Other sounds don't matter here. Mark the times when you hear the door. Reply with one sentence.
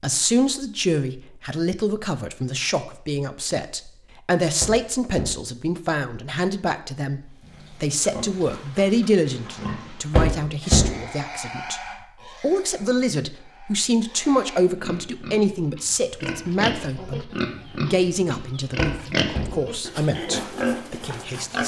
The door can be heard from 4.6 to 5.4 s, from 10.1 to 10.9 s and from 18.8 to 19.6 s.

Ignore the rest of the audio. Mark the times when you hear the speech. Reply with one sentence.
You can hear the speech from 0.0 to 11.8 s and from 12.4 to 21.6 s.